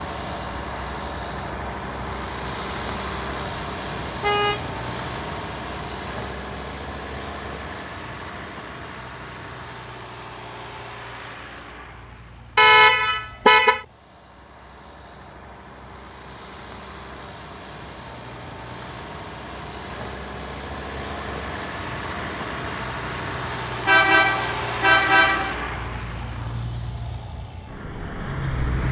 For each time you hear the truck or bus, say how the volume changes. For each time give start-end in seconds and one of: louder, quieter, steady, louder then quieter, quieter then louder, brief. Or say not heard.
0.0-28.8 quieter then louder.